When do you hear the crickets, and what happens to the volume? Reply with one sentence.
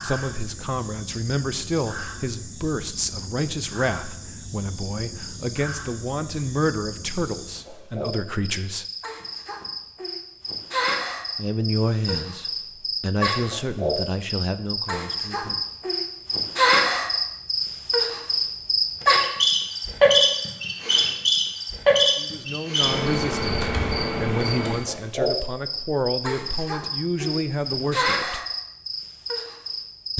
The crickets can be heard from 0.0 to 30.1 s, getting louder then quieter.